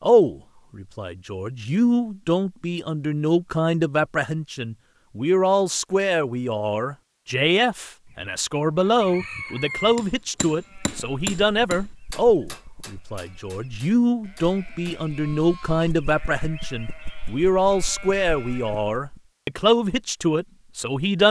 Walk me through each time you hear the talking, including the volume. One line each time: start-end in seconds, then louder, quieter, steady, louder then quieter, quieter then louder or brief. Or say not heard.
0.0-21.2 steady.